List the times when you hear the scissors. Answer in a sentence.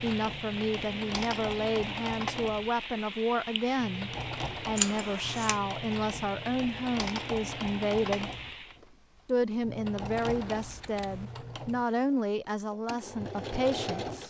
The scissors can be heard from 4.8 to 5.5 s and from 10.4 to 11.3 s.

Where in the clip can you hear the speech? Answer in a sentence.
You can hear the speech from 0.0 to 8.3 s and from 9.2 to 14.2 s.